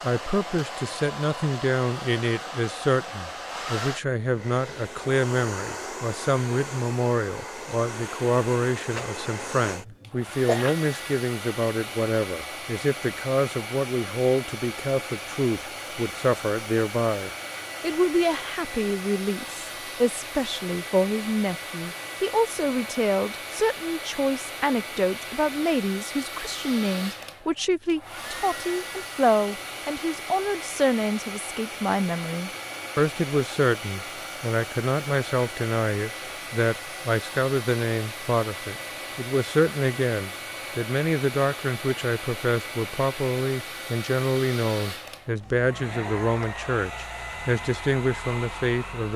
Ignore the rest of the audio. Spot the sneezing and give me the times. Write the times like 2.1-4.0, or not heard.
8.9-10.8.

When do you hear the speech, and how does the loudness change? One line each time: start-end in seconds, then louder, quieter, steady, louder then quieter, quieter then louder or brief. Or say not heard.
0.0-49.1 steady.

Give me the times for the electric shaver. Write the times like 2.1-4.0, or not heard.
not heard.